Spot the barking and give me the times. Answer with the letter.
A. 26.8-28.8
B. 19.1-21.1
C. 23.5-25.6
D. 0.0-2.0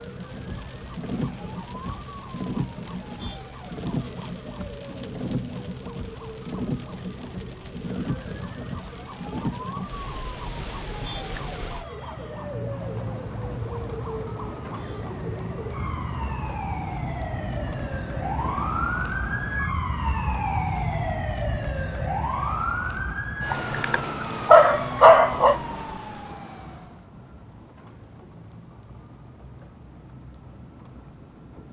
C.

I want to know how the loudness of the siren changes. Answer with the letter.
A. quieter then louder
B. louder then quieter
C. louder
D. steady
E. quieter
C.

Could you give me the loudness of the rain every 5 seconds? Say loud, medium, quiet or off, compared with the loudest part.
loud, loud, loud, loud, medium, quiet, quiet.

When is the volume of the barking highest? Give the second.
25 s.